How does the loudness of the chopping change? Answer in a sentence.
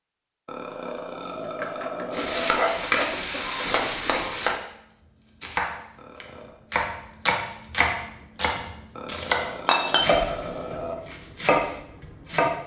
The loudness of the chopping goes up.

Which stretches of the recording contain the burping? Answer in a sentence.
The burping can be heard from 0.5 to 2.5 s, from 6.0 to 6.6 s and from 8.9 to 10.9 s.